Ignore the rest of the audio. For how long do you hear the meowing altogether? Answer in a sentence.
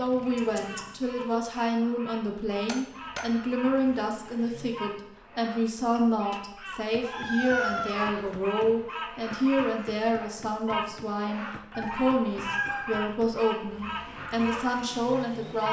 The meowing can be heard for 4 seconds in total.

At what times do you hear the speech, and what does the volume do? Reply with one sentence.
You can hear the speech from 0.0 to 15.6 s, at a steady volume.